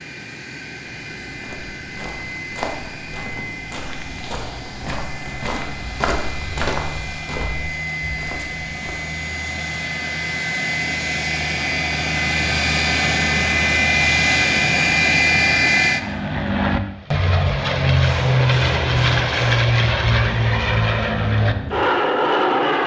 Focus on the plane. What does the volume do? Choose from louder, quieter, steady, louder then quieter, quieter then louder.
louder.